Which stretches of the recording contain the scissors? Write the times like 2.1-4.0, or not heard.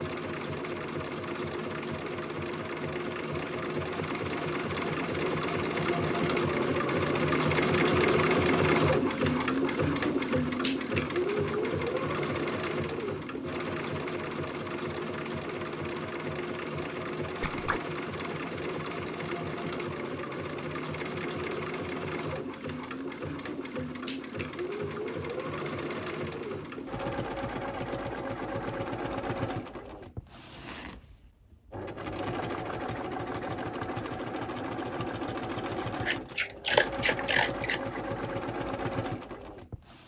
17.4-17.8, 36.0-38.0.